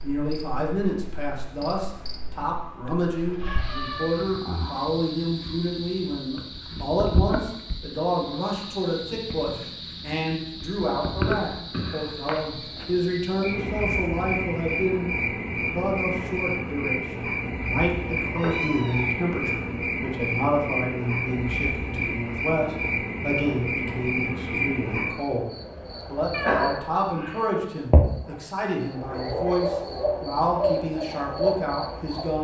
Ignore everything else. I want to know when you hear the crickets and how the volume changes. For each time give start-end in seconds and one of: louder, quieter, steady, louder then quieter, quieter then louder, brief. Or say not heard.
0.0-32.3 louder.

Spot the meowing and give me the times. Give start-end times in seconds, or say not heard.
3.2-4.2, 18.1-19.1, 26.3-27.4.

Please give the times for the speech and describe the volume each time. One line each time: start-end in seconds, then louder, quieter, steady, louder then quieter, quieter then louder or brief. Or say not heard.
0.0-15.1 steady
15.7-32.3 steady.